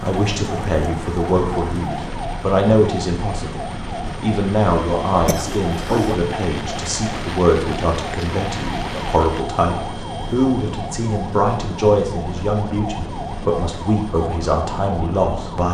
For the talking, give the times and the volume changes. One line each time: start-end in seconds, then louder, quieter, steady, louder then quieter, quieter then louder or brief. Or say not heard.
0.0-15.6 steady.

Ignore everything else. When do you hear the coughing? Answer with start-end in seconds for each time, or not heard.
5.2-6.2.